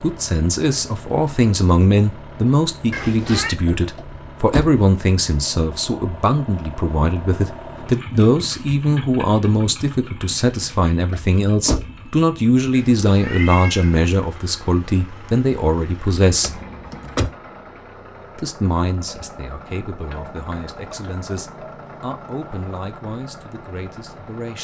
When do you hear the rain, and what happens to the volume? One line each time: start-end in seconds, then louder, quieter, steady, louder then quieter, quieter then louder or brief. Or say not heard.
not heard.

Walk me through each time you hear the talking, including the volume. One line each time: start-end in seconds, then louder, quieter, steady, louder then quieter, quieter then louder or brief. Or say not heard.
0.0-16.6 steady
18.4-24.5 quieter.